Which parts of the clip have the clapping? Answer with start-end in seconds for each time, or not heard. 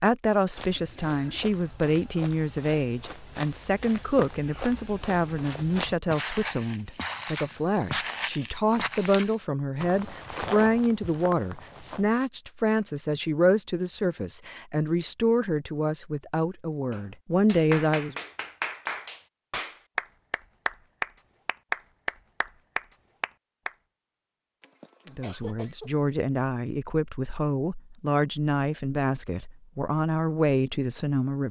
16.9-23.7.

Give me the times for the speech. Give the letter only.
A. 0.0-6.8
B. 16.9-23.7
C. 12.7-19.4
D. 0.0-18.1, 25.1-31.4
D.